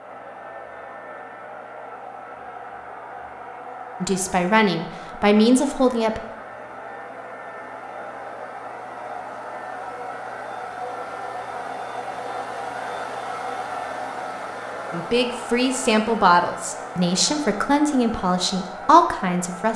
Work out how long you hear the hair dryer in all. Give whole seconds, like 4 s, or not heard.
20 s.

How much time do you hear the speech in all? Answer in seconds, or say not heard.
7 s.